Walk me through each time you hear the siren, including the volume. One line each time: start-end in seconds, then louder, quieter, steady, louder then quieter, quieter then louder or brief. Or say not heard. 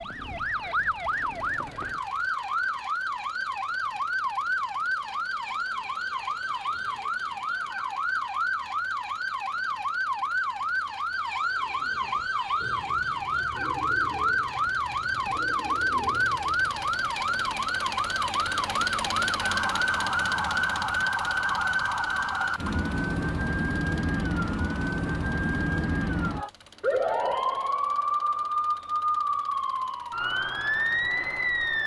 0.0-31.8 steady.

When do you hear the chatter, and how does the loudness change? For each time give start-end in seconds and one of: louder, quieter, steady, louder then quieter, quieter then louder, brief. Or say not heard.
not heard.